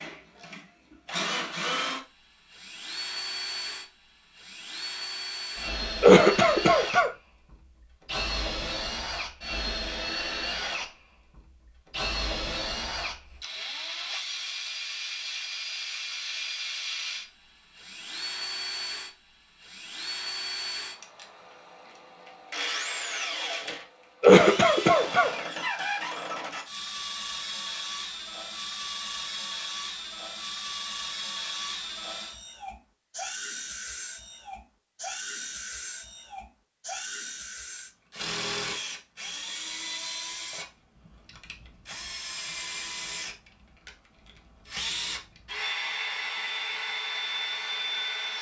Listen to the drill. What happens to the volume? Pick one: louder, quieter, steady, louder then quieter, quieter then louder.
steady.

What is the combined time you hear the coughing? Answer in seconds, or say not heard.
2 s.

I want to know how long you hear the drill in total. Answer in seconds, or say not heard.
48 s.